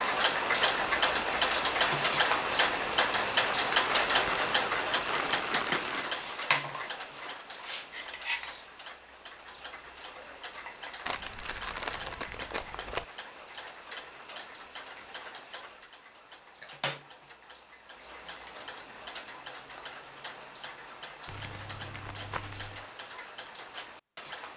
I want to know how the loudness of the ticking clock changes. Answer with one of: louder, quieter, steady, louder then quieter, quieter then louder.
quieter.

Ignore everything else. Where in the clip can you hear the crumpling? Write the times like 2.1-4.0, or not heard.
3.8-6.1, 11.1-13.1, 21.2-22.9.